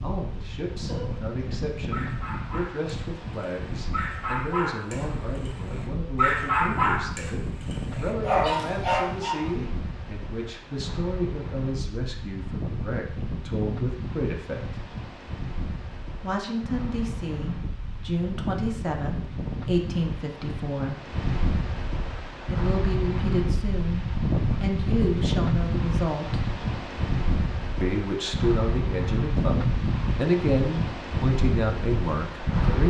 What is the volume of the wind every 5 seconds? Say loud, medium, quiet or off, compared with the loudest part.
medium, medium, medium, medium, loud, loud, loud.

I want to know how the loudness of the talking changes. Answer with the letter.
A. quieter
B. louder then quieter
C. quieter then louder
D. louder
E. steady
D.